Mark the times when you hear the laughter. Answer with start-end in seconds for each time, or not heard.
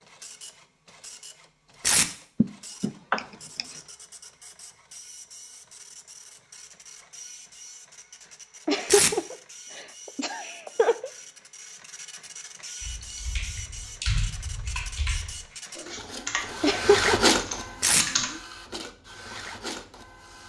2.4-3.6, 8.7-11.1, 16.6-17.3.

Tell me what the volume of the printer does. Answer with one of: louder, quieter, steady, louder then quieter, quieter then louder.
louder.